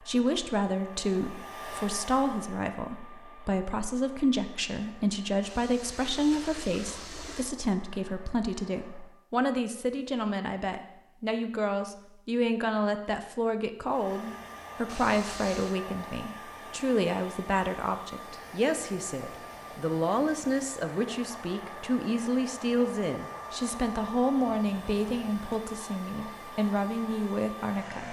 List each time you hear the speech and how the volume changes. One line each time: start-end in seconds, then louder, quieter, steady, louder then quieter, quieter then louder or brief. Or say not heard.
0.0-28.0 steady.